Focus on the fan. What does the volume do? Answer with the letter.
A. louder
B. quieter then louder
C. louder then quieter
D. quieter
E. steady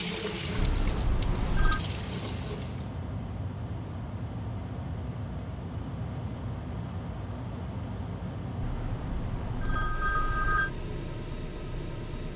E.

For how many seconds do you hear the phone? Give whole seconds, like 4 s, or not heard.
3 s.